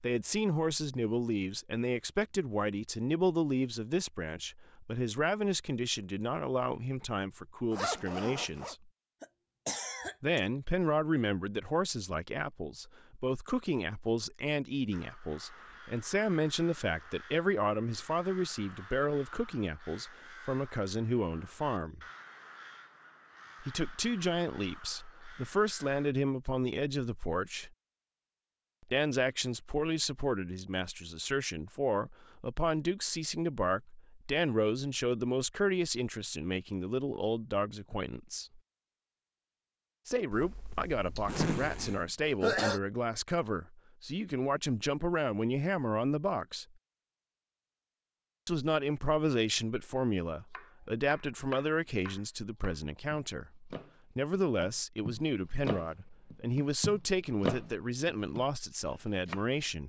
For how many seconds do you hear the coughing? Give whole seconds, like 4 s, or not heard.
3 s.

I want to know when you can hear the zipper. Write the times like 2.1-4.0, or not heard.
7.7-8.8, 40.3-42.0.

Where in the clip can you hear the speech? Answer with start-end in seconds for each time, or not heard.
0.0-8.9, 10.2-22.1, 23.6-27.7, 28.9-38.6, 40.0-46.6, 48.5-59.8.